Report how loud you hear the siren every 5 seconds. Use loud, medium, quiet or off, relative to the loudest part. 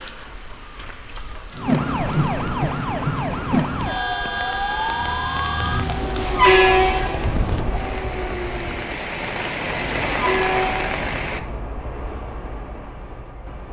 loud, medium, off.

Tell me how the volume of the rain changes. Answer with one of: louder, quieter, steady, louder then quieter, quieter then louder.
louder.